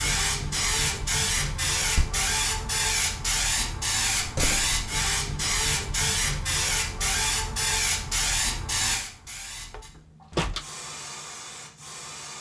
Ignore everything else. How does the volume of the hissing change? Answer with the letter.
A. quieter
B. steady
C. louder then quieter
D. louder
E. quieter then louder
A.